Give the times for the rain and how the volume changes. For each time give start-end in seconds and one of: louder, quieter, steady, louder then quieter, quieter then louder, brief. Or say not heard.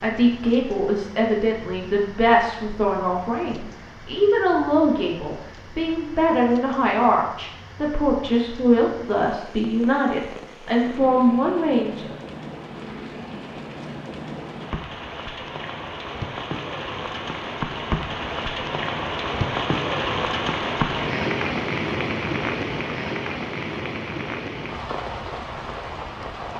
0.0-26.5 louder.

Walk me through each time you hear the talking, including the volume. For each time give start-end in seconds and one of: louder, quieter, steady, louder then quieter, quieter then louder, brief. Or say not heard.
0.0-12.2 steady.